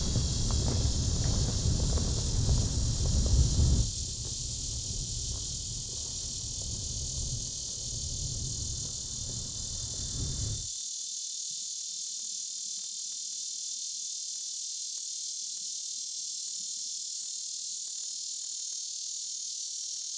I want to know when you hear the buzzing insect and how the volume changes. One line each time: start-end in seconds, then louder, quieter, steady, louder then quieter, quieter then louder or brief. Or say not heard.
0.0-20.1 steady.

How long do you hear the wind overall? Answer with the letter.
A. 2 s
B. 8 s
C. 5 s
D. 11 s
D.